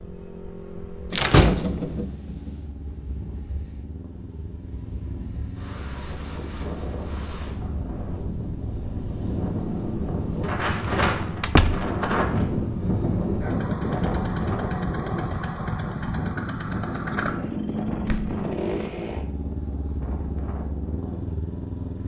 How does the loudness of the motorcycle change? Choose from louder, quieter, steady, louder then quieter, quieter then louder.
louder.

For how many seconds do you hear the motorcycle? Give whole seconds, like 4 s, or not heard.
22 s.